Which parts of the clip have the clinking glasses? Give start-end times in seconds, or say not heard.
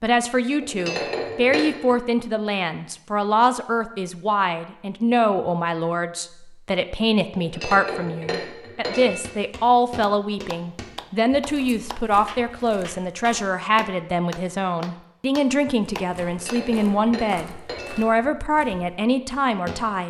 0.6-1.9, 7.3-9.2, 16.2-18.1.